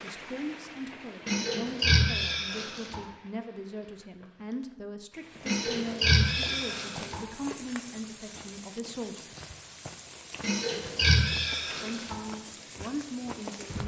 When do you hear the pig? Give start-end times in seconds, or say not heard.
1.2-3.0, 5.5-7.2, 10.4-12.2.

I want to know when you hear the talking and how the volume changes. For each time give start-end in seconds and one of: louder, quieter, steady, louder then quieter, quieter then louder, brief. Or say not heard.
0.0-9.5 steady
11.7-13.8 brief.